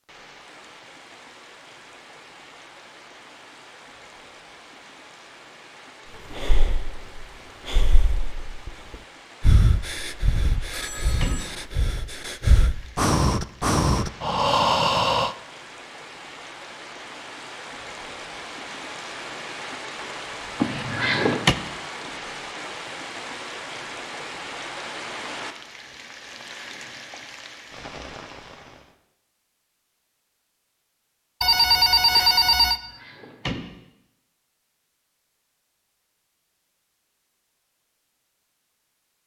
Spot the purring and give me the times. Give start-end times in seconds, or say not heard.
not heard.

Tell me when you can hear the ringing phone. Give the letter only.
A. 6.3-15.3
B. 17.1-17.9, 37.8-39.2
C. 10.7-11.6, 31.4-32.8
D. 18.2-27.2
C.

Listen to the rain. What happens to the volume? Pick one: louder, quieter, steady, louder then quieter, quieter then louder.
louder.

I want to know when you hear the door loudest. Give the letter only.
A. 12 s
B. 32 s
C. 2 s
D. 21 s
D.